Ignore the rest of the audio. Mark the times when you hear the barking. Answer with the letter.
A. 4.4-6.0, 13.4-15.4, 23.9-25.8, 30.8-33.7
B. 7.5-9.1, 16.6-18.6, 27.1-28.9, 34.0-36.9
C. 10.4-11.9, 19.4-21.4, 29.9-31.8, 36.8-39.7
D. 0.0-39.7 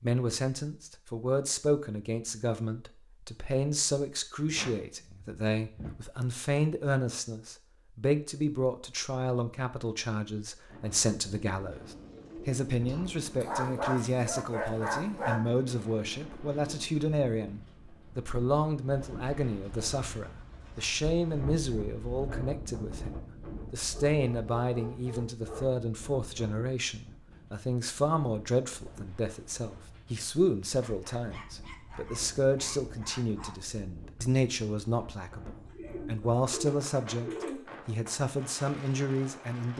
A.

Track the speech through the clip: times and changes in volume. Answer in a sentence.
The speech can be heard from 0.0 to 39.7 s, at a steady volume.